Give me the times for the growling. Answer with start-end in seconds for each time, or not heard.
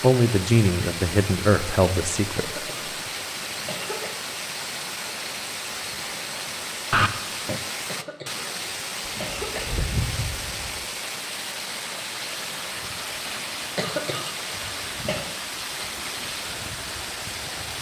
6.9-7.6.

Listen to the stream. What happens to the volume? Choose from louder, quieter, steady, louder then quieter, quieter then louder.
steady.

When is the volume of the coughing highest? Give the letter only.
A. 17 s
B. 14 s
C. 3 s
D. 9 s
B.